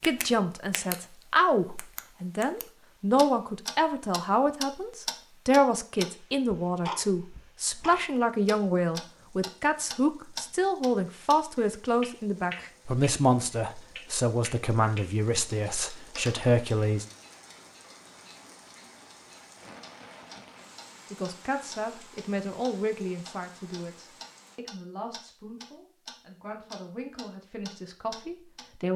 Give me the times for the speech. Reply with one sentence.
The speech can be heard from 0.0 to 17.1 s and from 21.1 to 28.9 s.